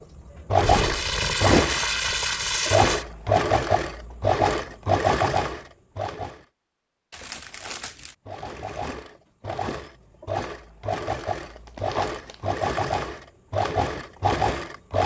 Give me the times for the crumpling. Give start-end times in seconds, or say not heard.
0.6-3.0, 7.1-8.2, 11.4-12.3.